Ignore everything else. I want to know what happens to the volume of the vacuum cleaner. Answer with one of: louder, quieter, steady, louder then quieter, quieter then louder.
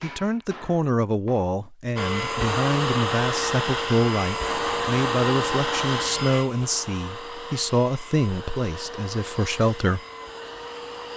quieter.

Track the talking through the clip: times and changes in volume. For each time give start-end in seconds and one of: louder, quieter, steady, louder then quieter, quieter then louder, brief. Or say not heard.
0.0-10.0 steady.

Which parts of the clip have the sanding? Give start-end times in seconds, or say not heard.
not heard.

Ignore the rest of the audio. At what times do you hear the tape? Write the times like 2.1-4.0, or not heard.
not heard.